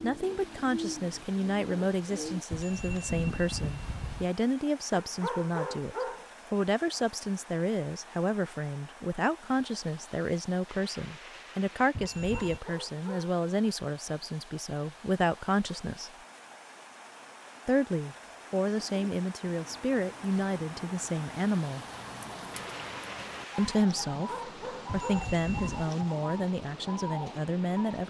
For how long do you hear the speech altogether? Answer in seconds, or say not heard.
25 s.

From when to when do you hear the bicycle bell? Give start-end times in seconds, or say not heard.
2.5-4.3, 11.9-12.6, 24.9-25.9.